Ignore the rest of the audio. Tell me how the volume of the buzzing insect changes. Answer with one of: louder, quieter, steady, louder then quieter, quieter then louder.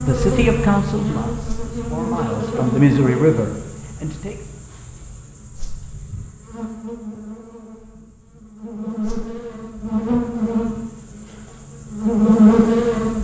quieter then louder.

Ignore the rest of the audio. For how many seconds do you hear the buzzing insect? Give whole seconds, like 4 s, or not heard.
13 s.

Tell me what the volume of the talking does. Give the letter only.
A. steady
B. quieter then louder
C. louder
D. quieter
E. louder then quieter
B.